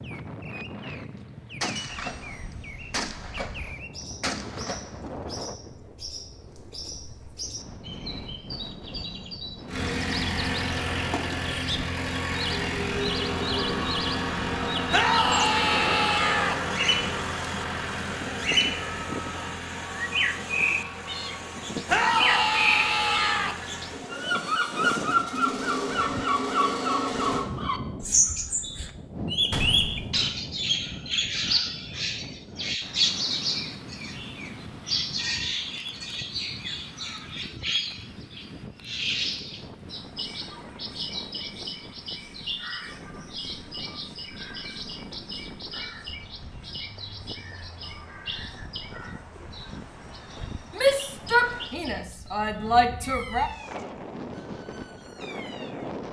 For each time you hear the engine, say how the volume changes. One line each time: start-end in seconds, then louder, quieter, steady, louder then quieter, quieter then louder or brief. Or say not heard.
9.7-27.4 quieter then louder.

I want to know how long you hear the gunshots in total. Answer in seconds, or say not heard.
4 s.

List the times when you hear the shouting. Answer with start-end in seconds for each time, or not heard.
14.9-16.6, 21.9-23.6, 50.7-53.5.